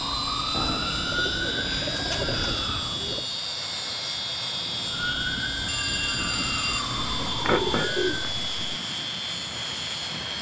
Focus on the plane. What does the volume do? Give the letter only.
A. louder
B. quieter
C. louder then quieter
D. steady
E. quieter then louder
D.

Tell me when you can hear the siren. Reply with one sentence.
You can hear the siren from 0.0 to 3.0 s and from 4.8 to 8.2 s.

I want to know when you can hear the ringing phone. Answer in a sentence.
The ringing phone can be heard from 5.7 to 6.8 s.